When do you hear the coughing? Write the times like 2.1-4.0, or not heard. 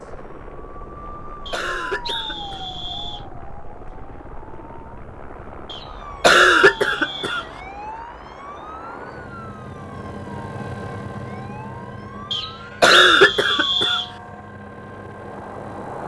1.5-2.6, 6.2-7.4, 12.8-14.0.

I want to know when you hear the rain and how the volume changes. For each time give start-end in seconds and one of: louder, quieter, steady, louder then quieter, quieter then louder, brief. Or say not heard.
not heard.